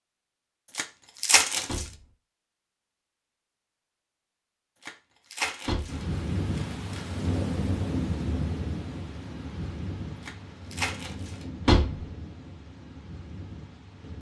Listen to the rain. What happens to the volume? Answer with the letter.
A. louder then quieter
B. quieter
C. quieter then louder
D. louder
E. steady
B.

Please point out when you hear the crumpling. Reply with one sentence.
You can hear the crumpling from 0.8 to 1.9 s, from 4.8 to 7.2 s and from 10.2 to 11.4 s.